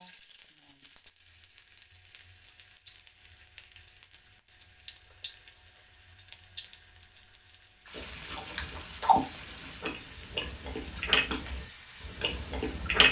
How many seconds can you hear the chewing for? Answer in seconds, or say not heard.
5 s.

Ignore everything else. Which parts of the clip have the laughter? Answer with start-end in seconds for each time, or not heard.
not heard.